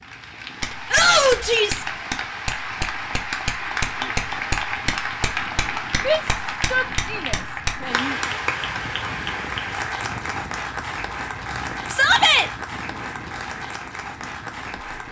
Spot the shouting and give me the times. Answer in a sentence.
You can hear the shouting from 0.9 to 1.9 s, from 6.0 to 8.2 s and from 11.9 to 12.5 s.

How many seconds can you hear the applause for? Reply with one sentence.
The applause can be heard for 15 seconds in total.